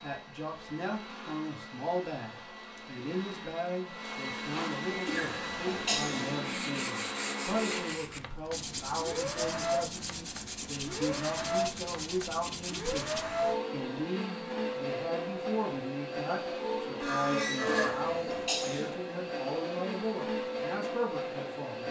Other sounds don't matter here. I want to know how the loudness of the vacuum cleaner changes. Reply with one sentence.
The loudness of the vacuum cleaner goes up.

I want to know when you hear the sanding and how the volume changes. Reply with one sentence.
You can hear the sanding from 6.4 to 13.2 s, at a steady volume.